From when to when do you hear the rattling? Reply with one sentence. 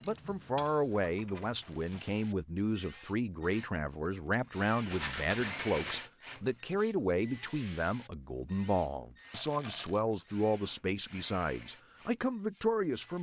You can hear the rattling from 1.6 to 2.2 s, from 4.8 to 6.1 s and from 9.3 to 10.0 s.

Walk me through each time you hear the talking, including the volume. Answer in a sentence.
You can hear the talking from 0.0 to 13.1 s, at a steady volume.